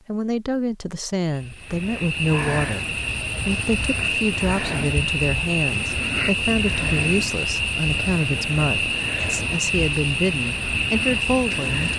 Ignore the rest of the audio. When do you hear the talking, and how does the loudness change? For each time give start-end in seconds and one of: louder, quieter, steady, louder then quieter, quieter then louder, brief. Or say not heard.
0.1-11.9 steady.